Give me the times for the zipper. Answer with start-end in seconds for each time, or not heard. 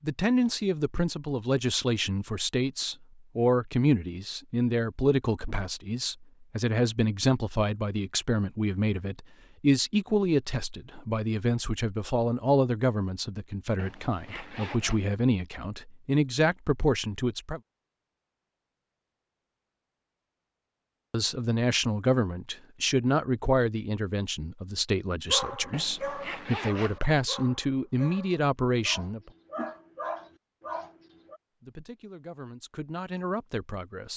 13.8-15.1, 25.7-27.0.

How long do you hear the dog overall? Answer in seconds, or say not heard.
6 s.